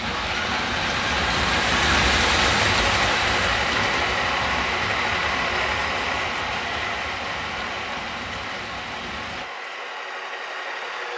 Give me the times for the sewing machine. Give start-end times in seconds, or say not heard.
0.0-11.1.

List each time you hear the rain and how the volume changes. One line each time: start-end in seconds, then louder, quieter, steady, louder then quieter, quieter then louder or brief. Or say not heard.
0.0-9.4 quieter.